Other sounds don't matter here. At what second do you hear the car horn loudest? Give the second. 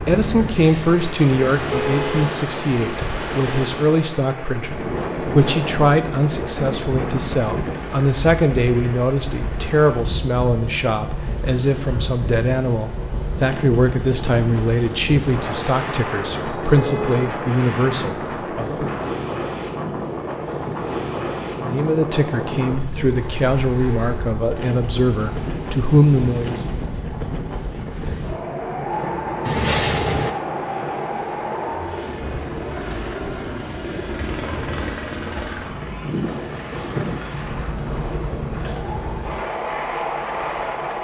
30 s.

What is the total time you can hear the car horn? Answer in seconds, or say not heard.
5 s.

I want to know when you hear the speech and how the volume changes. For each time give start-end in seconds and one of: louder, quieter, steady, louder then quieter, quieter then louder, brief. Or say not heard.
0.0-18.9 steady
21.6-26.6 louder.